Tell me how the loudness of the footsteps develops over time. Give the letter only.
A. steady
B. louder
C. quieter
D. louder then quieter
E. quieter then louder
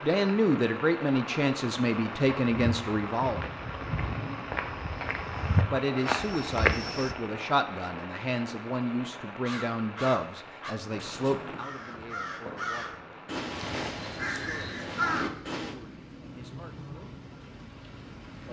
B.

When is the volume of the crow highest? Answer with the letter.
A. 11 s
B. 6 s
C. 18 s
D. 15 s
D.